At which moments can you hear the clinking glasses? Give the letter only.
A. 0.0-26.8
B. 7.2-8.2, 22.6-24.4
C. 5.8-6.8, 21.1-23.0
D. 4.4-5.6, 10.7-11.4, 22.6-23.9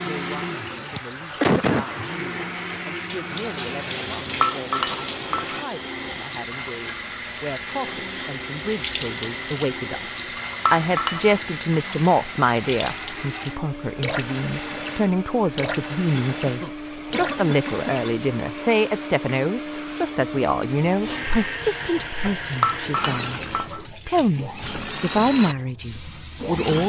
D.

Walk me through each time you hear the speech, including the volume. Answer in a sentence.
You can hear the speech from 0.0 to 26.8 s, getting louder.